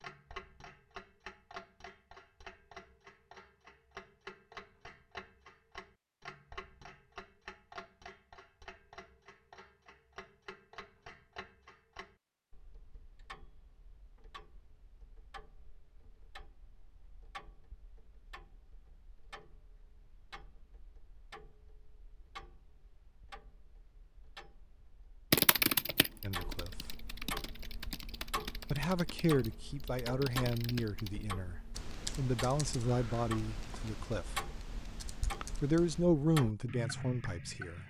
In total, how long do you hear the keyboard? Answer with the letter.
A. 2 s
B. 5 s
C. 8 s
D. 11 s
D.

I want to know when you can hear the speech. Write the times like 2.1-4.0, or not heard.
26.2-26.9, 28.7-34.5, 35.6-37.8.